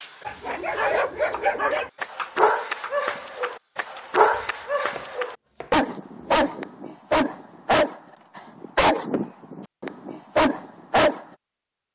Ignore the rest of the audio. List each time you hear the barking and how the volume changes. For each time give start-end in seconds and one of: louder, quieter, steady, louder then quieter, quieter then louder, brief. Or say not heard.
0.2-11.2 steady.